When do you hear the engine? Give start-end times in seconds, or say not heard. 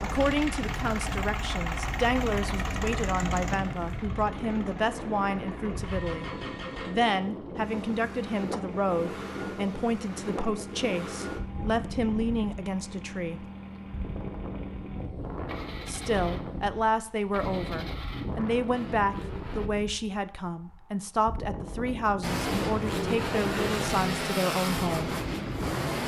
0.0-19.7, 22.2-26.0.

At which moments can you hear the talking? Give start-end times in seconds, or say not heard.
0.0-13.4, 15.8-25.1.